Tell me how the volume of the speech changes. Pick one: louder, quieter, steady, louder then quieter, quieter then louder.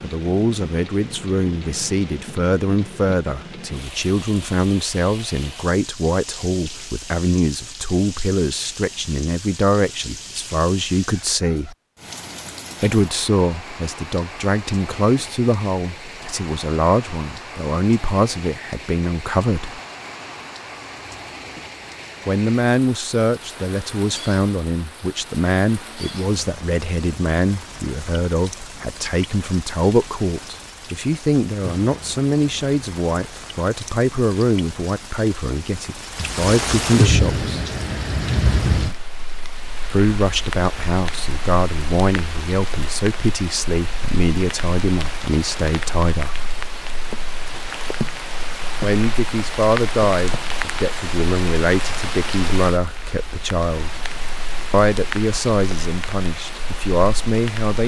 steady.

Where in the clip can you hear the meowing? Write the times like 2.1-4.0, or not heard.
not heard.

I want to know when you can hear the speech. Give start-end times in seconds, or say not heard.
0.0-11.8, 12.8-19.8, 22.2-37.6, 39.9-46.4, 48.8-54.0, 54.7-57.8.